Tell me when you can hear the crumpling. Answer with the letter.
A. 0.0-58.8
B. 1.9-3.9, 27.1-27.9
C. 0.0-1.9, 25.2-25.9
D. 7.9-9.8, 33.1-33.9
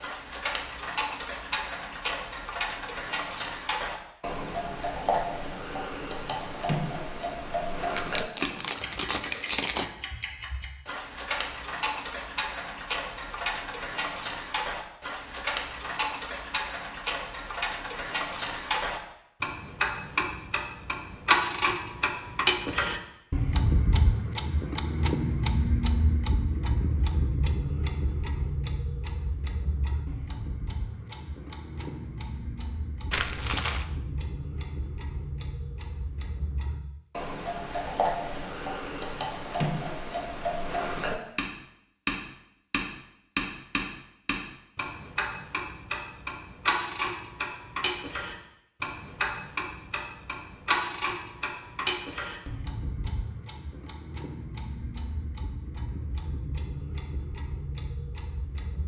D.